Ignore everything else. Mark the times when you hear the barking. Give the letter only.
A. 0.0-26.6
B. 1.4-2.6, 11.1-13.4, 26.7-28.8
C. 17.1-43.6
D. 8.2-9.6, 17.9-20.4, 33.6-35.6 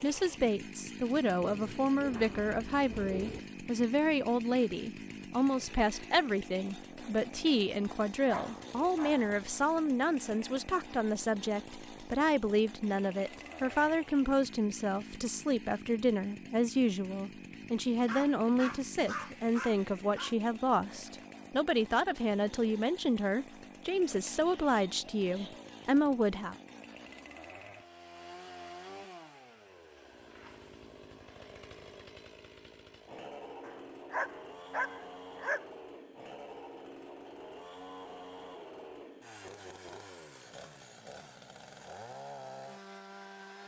D.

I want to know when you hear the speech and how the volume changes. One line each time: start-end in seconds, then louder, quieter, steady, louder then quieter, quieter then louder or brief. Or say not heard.
0.0-26.6 steady.